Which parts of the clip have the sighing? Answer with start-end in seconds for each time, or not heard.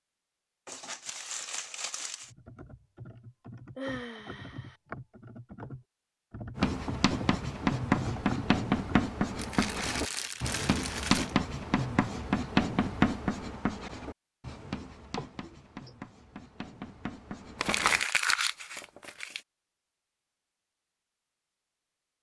3.8-4.8, 15.2-15.9.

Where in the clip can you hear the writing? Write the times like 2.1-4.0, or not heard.
6.5-18.1.